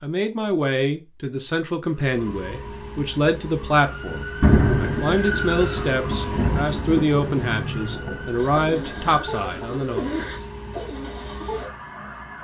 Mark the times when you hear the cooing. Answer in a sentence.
The cooing can be heard from 5.8 to 11.7 s.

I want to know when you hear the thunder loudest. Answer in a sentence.
The volume of the thunder peaks at 5 seconds.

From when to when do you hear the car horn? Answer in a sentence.
The car horn can't be heard in this clip.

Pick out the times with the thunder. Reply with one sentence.
You can hear the thunder from 4.4 to 9.2 s.